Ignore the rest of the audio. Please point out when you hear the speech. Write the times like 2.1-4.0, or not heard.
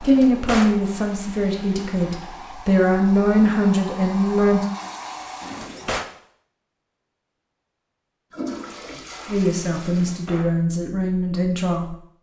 0.0-4.7, 9.2-11.9.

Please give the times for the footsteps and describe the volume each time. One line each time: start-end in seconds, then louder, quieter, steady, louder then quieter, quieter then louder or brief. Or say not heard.
not heard.